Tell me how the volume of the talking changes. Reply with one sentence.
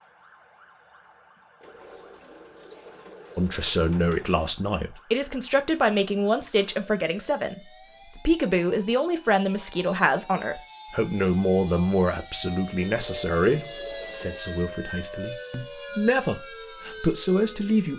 The volume of the talking stays about the same.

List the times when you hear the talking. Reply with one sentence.
You can hear the talking from 3.4 to 17.9 s.